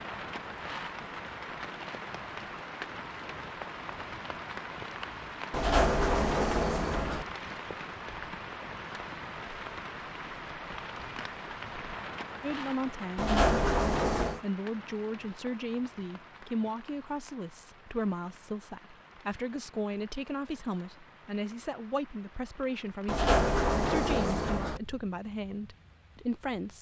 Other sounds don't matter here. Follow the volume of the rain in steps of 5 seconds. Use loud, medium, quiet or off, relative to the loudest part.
loud, loud, loud, quiet, quiet, quiet.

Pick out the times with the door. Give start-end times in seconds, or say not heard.
5.5-7.2, 13.2-14.4, 23.1-24.8.